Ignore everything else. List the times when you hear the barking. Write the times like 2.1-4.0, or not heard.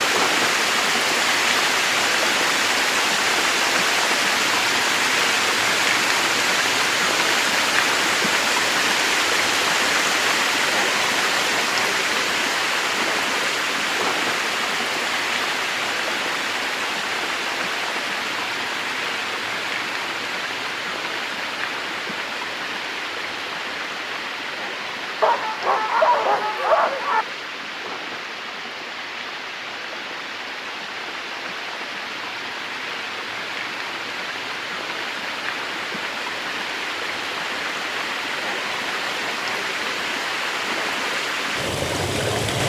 25.2-27.2.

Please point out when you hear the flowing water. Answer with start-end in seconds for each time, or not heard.
0.0-42.6.